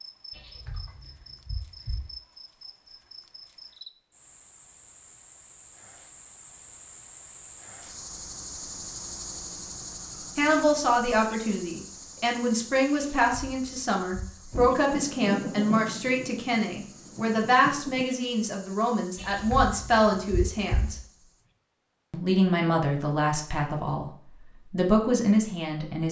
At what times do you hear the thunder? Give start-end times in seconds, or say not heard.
14.5-18.1.